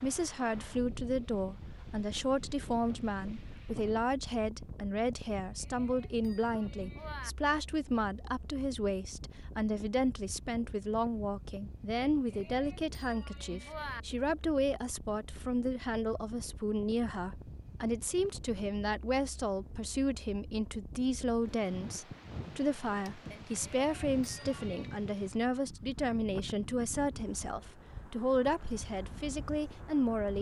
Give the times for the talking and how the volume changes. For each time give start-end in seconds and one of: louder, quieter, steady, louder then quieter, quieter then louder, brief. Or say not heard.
0.0-30.3 steady.